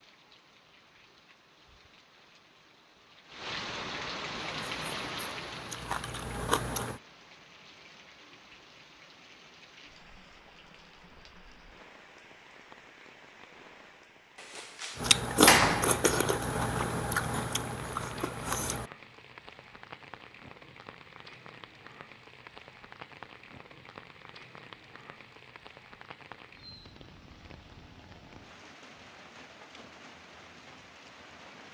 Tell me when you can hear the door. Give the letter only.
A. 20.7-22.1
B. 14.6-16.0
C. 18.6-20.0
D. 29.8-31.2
B.